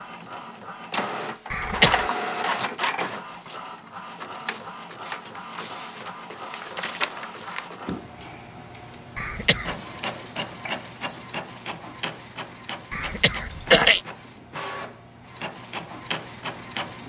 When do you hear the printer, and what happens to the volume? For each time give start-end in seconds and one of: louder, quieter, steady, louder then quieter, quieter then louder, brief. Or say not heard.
0.0-17.0 quieter.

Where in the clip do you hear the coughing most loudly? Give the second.
14 s.